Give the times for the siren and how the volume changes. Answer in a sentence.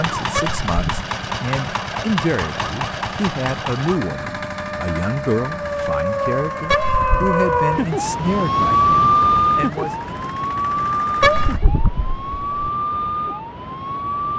You can hear the siren from 0.0 to 14.3 s, getting louder then quieter.